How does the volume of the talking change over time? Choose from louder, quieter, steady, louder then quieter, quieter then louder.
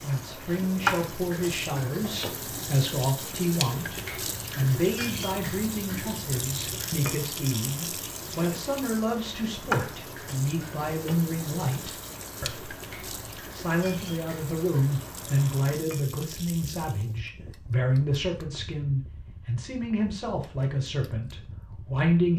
steady.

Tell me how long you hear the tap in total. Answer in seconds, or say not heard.
17 s.